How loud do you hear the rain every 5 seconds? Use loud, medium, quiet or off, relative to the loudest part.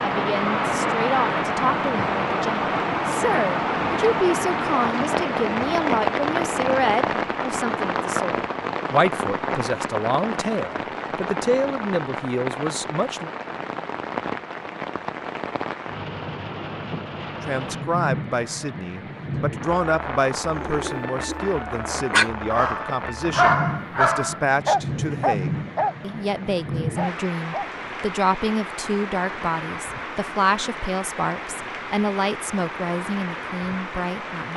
loud, loud, medium, medium, medium, medium, medium.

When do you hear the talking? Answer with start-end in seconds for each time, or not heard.
0.0-13.3, 17.4-34.5.